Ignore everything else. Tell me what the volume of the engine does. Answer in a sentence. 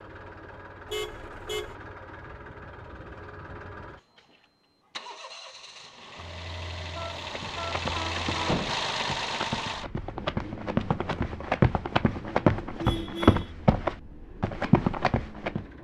The loudness of the engine goes up, then down.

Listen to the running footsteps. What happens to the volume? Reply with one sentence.
The volume of the running footsteps goes up.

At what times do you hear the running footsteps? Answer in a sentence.
You can hear the running footsteps from 7.3 to 15.7 s.